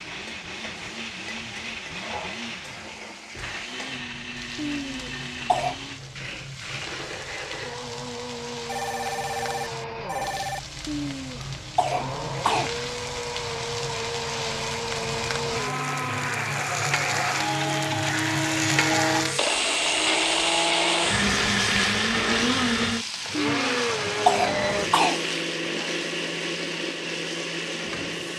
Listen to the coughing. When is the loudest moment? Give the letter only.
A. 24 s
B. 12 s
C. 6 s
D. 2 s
A.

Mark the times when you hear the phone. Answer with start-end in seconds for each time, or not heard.
8.7-10.6, 18.8-19.4.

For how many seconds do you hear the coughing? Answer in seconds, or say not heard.
5 s.